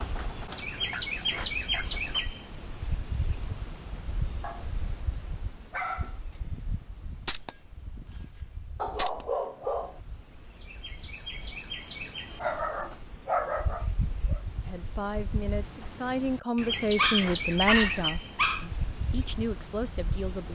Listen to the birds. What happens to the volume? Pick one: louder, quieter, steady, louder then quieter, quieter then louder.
quieter then louder.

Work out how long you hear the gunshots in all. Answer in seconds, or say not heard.
3 s.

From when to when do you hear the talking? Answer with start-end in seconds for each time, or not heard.
14.6-20.5.